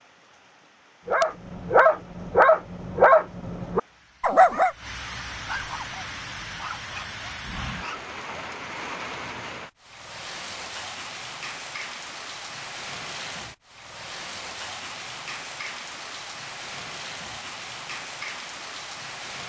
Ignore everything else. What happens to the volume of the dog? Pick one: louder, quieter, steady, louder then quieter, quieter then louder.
quieter.